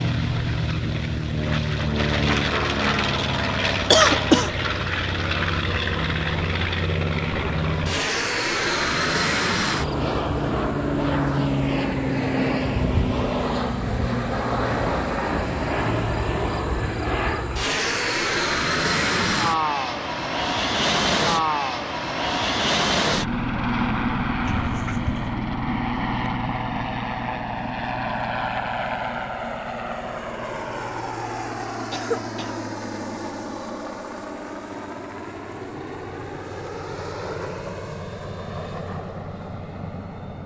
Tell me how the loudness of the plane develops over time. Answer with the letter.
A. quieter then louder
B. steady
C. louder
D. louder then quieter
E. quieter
E.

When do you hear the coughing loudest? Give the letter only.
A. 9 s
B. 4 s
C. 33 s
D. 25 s
B.